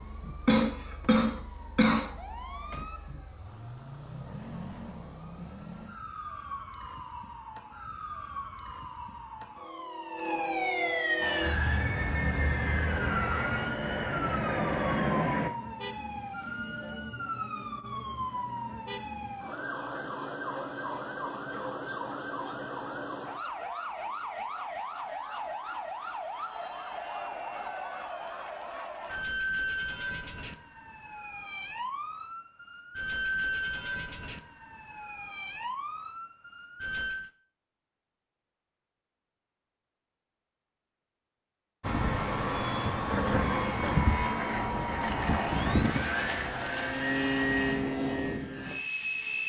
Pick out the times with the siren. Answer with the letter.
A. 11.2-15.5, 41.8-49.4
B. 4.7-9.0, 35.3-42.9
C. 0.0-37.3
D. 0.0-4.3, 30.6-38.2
C.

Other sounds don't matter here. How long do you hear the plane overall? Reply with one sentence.
The plane can be heard for 12 seconds in total.